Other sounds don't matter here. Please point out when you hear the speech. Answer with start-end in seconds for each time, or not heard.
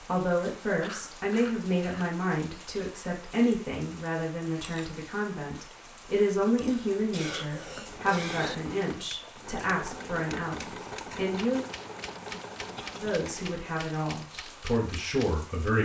0.0-11.7, 13.0-15.8.